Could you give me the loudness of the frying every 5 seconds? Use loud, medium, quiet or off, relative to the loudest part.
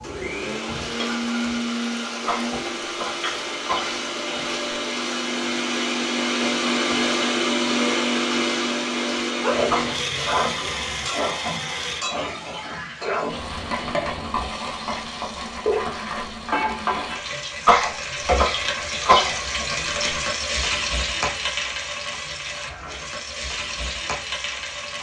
medium, loud, loud, loud, loud.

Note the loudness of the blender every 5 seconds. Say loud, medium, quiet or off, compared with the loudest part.
medium, loud, medium, off, off.